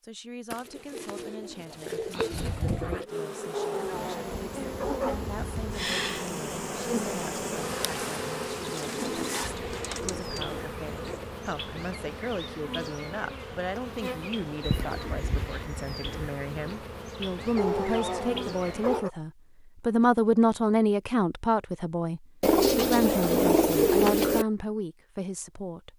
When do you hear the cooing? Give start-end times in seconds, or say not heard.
0.5-3.0, 8.7-11.2, 14.6-16.4, 22.4-24.4.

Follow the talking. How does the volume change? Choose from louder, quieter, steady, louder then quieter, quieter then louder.
louder.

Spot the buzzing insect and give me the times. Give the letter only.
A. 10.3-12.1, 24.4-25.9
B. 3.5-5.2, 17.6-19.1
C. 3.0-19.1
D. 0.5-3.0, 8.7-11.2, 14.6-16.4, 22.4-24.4
C.